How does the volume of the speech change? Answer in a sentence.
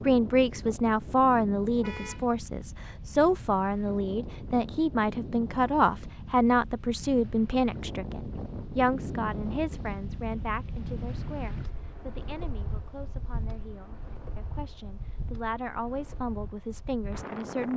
The loudness of the speech goes down, then up.